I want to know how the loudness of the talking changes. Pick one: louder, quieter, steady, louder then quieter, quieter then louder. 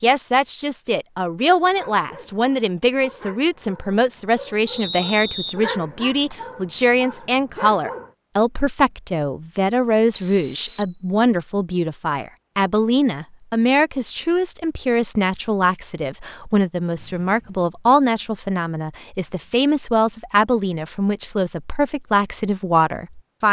steady.